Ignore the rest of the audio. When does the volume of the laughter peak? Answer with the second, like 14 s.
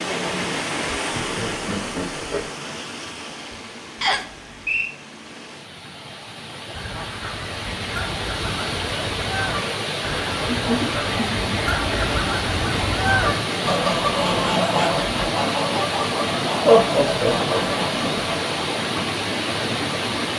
17 s.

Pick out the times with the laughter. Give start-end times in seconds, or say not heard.
1.1-2.5, 10.4-11.7, 16.6-17.6.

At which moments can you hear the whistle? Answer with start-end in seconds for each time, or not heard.
4.0-5.0.